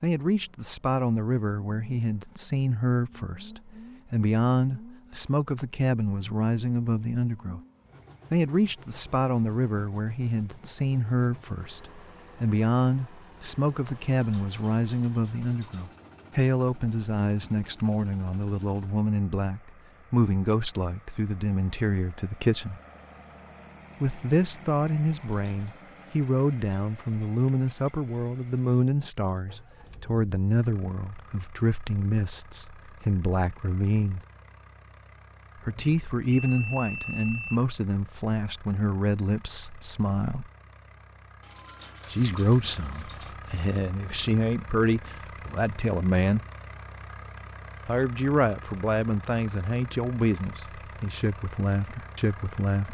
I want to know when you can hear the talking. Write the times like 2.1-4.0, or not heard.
0.0-7.6, 8.3-22.8, 24.0-34.2, 35.6-40.5, 42.1-46.5, 47.9-52.9.